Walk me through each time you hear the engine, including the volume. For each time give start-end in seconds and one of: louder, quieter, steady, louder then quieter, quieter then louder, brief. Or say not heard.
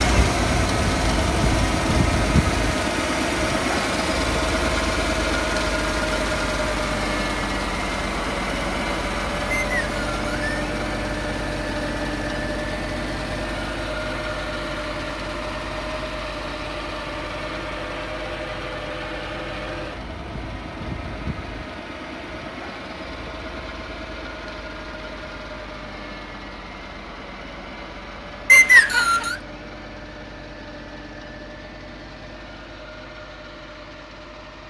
0.0-34.6 quieter.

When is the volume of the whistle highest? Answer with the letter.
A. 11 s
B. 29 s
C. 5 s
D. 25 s
B.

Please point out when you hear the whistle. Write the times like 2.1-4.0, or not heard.
9.5-10.7, 28.4-29.4.